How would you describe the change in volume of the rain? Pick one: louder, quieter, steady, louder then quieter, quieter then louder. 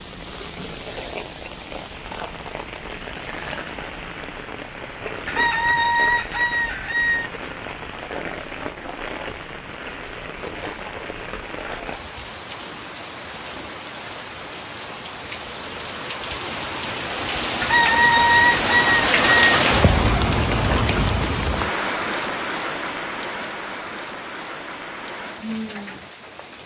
louder then quieter.